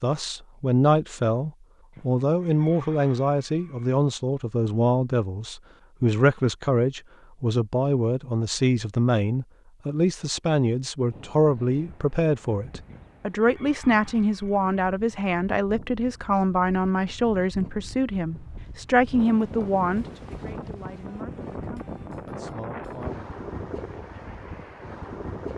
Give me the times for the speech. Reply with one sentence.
The speech can be heard from 0.0 to 23.2 s.